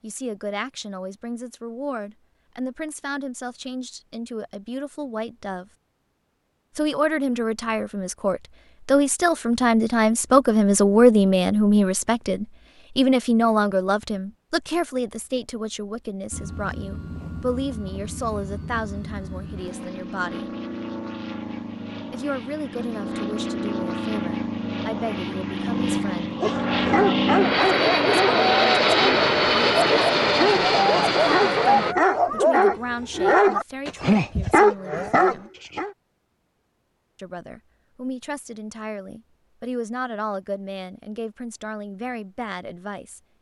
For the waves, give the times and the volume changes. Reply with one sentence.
You can't hear the waves here.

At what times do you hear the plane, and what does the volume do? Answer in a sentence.
The plane can be heard from 16.3 to 31.9 s, getting louder.